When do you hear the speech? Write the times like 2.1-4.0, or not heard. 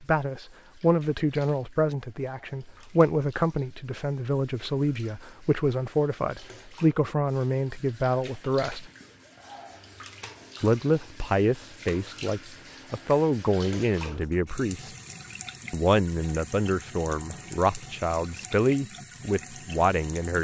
0.0-8.8, 10.6-14.9, 15.7-20.3.